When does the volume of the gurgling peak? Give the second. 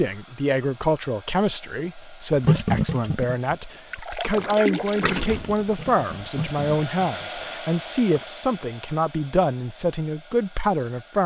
3 s.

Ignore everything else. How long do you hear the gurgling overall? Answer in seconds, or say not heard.
6 s.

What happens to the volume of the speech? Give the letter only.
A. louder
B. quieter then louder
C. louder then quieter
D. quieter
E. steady
E.